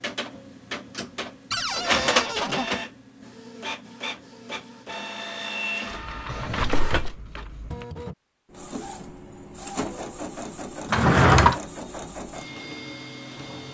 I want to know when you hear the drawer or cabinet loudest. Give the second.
11 s.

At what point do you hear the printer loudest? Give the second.
2 s.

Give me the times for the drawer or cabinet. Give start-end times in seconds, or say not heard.
1.5-2.7, 6.2-7.2, 10.9-11.6.